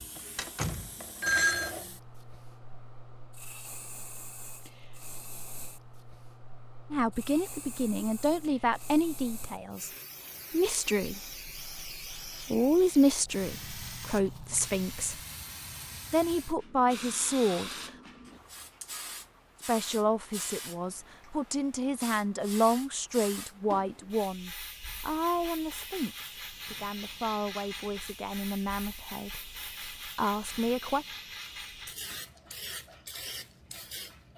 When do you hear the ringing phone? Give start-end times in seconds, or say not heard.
0.3-1.8.